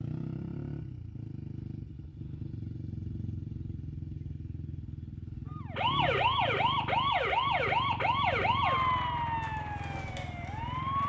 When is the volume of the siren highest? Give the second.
7 s.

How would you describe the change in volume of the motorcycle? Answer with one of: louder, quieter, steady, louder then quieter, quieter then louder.
steady.